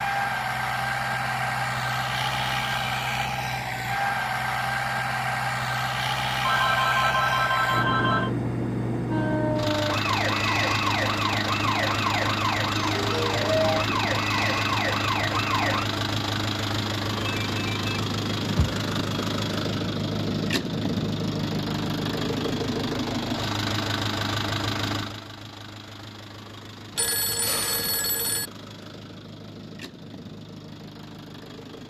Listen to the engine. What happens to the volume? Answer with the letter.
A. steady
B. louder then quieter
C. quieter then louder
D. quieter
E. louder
D.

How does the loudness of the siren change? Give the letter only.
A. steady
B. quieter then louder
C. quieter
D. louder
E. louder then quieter
A.